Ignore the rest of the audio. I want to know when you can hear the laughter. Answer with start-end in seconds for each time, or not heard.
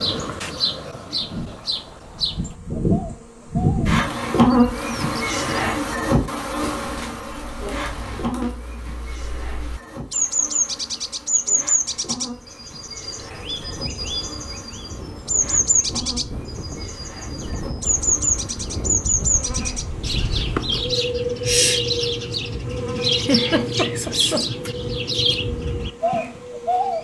23.1-24.4.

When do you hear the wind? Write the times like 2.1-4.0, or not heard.
13.4-27.0.